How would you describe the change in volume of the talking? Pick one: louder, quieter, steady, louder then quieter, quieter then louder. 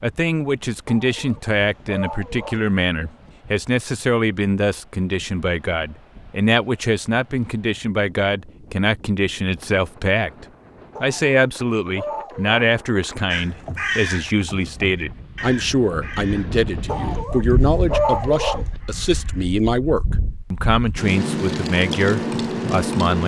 steady.